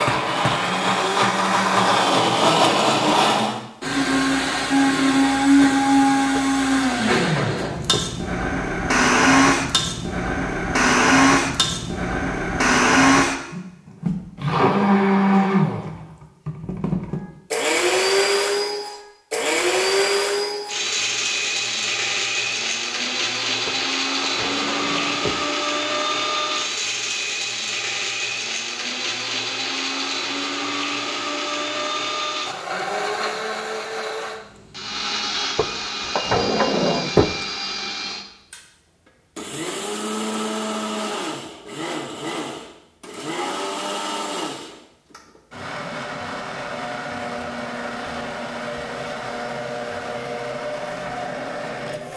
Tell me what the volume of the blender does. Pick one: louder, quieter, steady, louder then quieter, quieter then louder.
quieter.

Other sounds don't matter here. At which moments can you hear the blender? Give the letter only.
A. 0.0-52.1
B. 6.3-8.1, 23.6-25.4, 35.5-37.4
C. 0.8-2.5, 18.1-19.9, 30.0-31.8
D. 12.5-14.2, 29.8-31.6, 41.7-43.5
A.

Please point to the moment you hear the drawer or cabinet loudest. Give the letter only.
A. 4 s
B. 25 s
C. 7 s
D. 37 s
D.